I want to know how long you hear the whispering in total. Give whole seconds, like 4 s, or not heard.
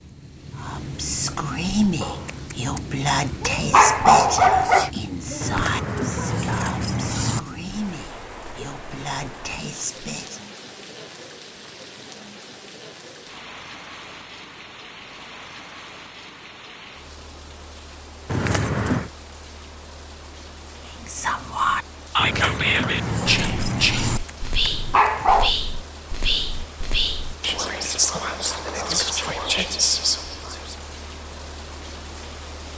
20 s.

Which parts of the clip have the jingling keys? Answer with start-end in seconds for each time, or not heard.
5.4-7.4, 18.2-19.1, 22.1-24.2.